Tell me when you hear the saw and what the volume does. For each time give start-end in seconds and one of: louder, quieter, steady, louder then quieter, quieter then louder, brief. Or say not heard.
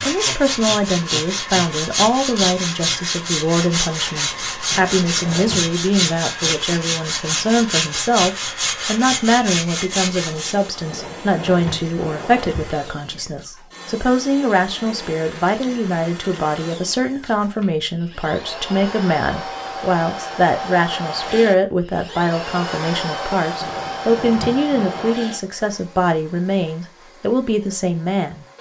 0.0-10.7 steady.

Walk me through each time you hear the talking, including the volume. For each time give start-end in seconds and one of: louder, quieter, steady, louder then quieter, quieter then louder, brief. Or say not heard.
0.0-28.4 steady.